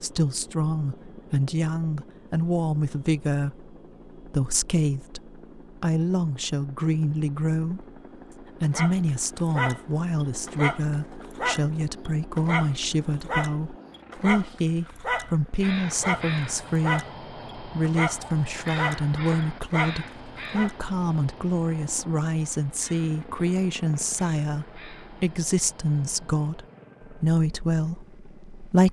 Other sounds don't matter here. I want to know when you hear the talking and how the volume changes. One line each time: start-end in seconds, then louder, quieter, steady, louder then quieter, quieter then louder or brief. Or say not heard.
0.0-28.8 steady.